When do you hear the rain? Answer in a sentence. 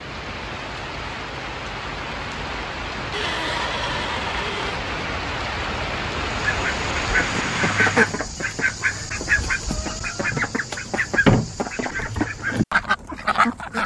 You can hear the rain from 0.0 to 8.2 s.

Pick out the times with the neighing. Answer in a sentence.
The neighing can be heard from 3.1 to 4.8 s.